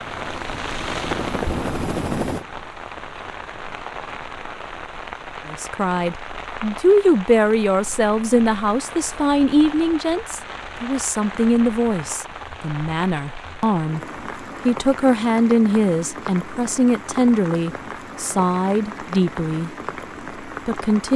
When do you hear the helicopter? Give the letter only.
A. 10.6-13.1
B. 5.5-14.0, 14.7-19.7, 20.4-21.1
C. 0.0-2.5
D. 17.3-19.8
C.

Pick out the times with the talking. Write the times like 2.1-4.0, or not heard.
5.5-14.0, 14.7-19.7, 20.4-21.1.